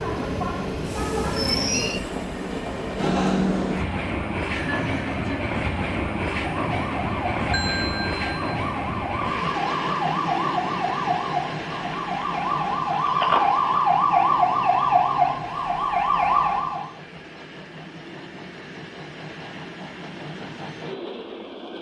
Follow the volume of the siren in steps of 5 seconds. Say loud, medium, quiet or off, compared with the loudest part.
off, medium, loud, loud, off.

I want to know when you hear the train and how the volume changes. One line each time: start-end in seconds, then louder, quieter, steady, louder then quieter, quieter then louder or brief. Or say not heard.
0.0-21.7 quieter.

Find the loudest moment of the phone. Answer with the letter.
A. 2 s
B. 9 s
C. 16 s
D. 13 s
D.